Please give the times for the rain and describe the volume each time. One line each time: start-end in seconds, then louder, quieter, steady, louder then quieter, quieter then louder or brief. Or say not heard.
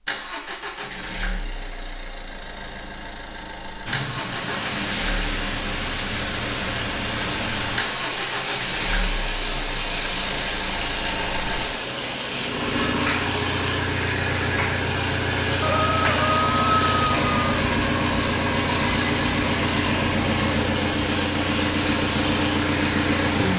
3.9-23.5 steady.